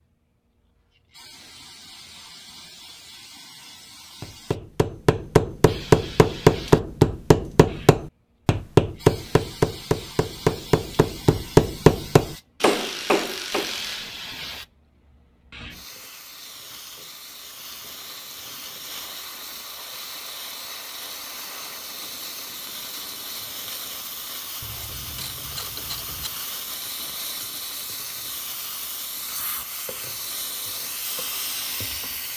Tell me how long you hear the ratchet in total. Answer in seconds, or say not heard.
3 s.